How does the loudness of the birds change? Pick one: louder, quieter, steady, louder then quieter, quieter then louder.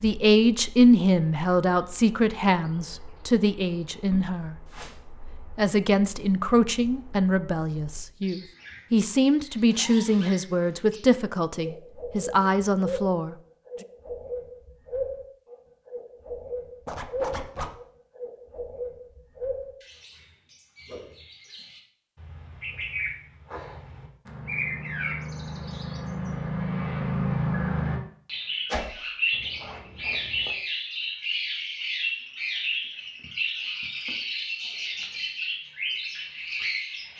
louder.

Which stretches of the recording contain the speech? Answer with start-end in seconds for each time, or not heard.
0.0-4.5, 5.5-13.3.